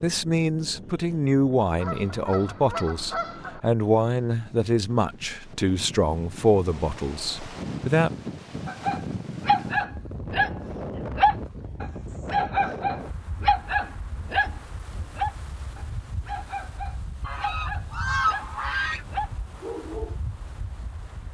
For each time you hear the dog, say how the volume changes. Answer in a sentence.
The dog can be heard from 8.7 to 20.1 s, getting quieter.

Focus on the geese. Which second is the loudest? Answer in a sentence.
The volume of the geese peaks at 18 seconds.